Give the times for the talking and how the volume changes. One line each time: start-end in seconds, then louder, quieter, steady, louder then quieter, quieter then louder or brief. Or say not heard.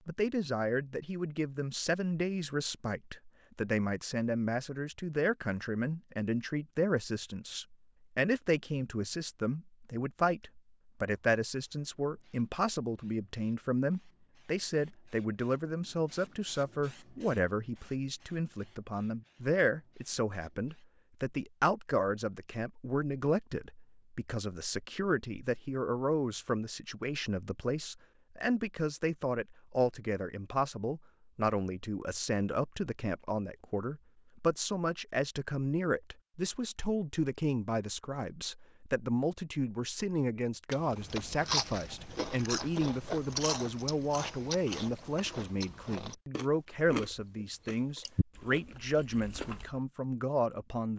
0.1-50.9 steady.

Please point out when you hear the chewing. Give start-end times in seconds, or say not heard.
40.7-49.8.